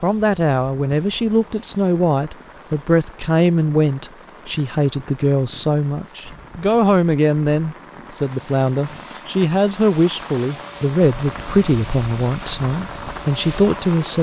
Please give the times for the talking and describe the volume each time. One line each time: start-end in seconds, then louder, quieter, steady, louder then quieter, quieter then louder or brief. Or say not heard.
0.0-14.1 steady.